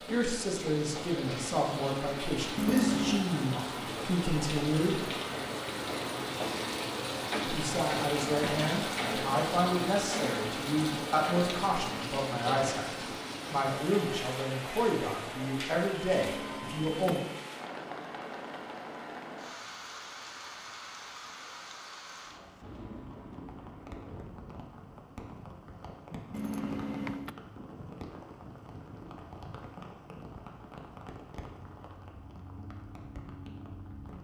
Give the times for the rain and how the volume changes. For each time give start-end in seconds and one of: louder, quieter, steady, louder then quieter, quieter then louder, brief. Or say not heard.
0.0-34.1 quieter.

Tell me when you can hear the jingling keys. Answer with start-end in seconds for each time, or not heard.
2.5-3.3, 16.2-17.3, 26.3-27.4.